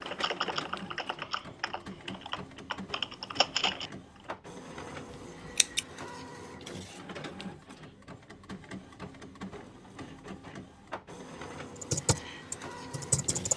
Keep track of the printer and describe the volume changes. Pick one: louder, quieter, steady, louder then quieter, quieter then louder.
steady.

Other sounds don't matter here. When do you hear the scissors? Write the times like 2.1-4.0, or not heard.
5.1-5.8.